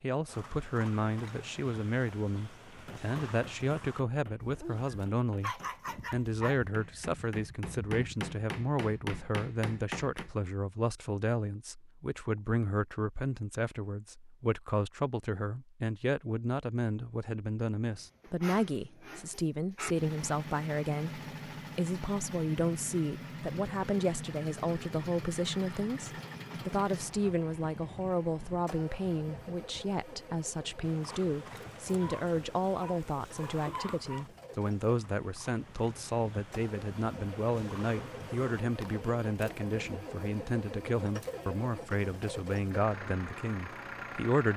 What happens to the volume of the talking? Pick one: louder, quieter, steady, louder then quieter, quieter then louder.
steady.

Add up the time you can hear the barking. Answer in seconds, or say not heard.
6 s.